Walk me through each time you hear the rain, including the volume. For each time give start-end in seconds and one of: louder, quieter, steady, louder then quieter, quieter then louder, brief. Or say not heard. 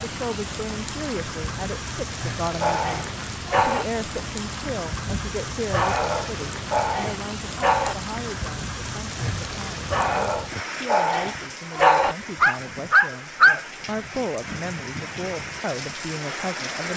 0.0-16.9 steady.